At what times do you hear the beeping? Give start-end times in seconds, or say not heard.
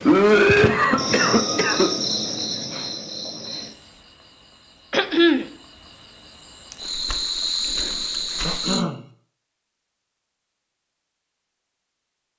not heard.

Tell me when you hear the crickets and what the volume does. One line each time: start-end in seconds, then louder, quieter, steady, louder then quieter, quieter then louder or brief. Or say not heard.
0.0-8.8 quieter then louder.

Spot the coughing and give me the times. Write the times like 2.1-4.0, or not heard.
0.1-1.9, 4.9-5.5, 8.4-9.0.